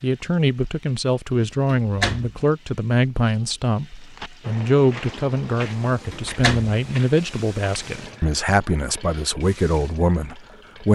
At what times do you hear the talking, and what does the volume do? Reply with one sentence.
You can hear the talking from 0.0 to 10.8 s, at a steady volume.